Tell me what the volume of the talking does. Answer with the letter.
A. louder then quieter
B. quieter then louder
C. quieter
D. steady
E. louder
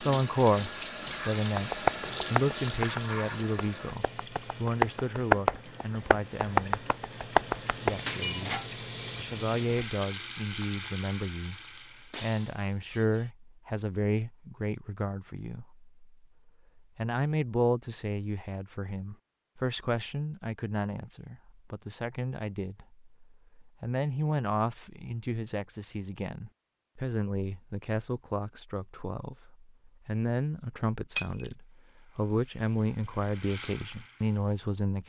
D.